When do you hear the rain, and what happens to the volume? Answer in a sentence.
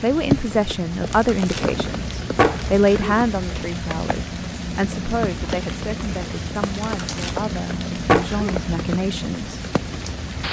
The rain can be heard from 0.0 to 10.4 s, at a steady volume.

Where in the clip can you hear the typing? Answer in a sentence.
The typing can't be heard in this clip.